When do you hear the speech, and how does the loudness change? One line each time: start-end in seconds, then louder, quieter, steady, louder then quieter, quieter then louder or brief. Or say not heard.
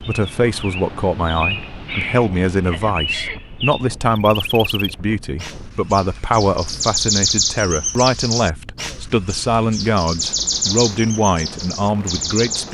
0.0-12.7 steady.